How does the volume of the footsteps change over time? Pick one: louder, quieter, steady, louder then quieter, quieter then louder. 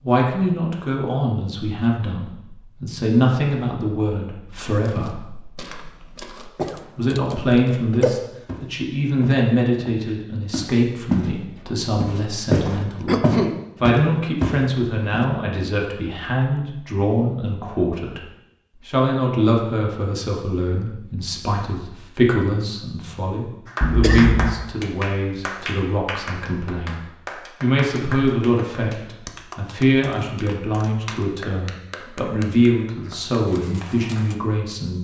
louder.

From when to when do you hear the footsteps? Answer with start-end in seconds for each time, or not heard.
4.8-11.3, 12.0-15.2.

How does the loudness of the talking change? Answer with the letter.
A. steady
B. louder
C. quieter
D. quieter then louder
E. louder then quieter
A.